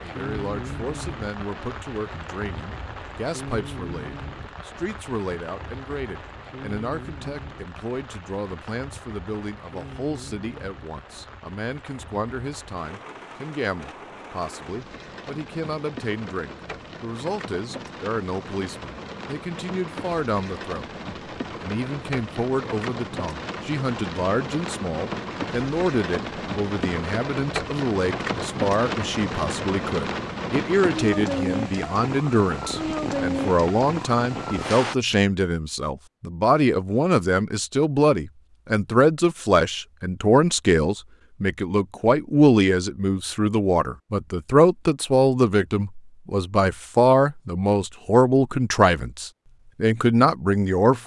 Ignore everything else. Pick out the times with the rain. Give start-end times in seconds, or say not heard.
0.0-35.0.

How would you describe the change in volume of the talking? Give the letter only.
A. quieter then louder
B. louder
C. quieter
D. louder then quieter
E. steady
B.